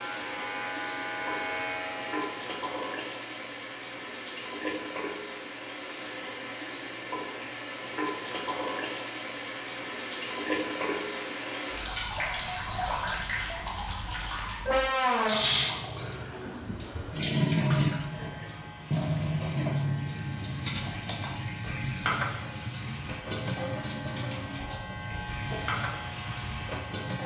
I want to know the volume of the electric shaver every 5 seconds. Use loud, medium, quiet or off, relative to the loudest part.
loud, off, off, medium, medium, loud.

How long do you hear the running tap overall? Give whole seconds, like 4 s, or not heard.
27 s.